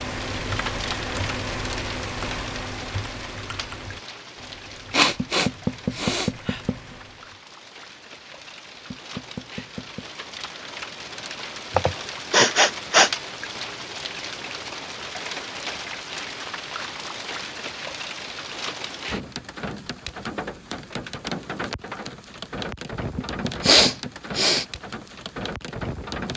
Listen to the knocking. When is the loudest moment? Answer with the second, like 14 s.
6 s.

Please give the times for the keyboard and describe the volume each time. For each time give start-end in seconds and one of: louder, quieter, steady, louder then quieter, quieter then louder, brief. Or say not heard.
0.0-7.4 quieter.